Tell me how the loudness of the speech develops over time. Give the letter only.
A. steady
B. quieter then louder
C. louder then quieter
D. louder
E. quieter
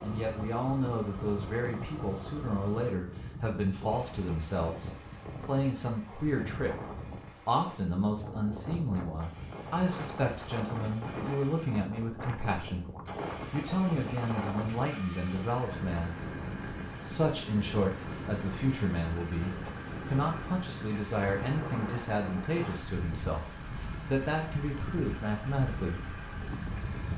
A.